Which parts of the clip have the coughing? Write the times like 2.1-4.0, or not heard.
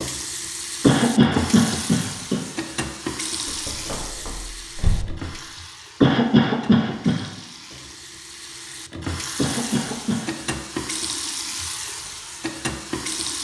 0.8-2.4, 6.0-7.3, 9.3-10.3.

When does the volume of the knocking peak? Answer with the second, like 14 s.
5 s.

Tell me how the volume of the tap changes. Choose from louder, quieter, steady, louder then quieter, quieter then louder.
quieter then louder.